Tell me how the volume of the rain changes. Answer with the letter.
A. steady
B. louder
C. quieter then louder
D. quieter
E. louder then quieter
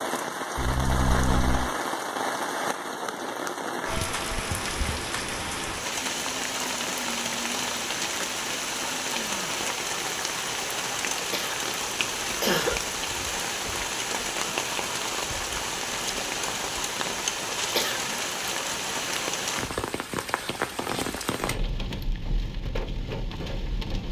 A.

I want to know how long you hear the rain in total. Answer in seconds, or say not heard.
24 s.